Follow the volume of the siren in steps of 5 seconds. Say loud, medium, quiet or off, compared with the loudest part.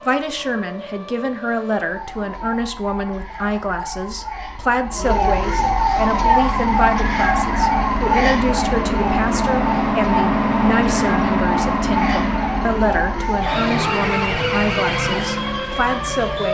quiet, loud, loud, loud.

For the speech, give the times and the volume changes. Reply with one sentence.
The speech can be heard from 0.1 to 16.4 s, at a steady volume.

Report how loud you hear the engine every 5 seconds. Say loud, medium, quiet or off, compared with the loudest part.
off, loud, loud, off.